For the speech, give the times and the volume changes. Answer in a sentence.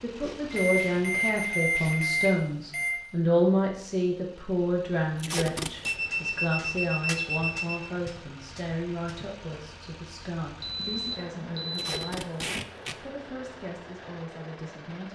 You can hear the speech from 0.0 to 15.0 s, getting quieter.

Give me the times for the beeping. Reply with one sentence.
The beeping can be heard from 0.5 to 3.0 s, from 5.8 to 7.9 s and from 10.6 to 12.1 s.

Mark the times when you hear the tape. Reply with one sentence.
You can hear the tape from 0.1 to 1.9 s, from 5.2 to 6.0 s and from 11.7 to 12.9 s.